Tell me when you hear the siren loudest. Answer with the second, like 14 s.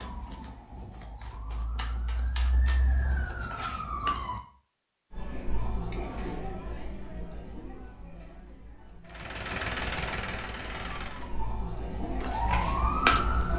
13 s.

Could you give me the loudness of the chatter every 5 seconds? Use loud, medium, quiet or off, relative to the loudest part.
off, loud, loud.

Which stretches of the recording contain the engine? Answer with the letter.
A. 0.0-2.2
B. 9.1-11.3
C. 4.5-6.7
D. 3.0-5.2
B.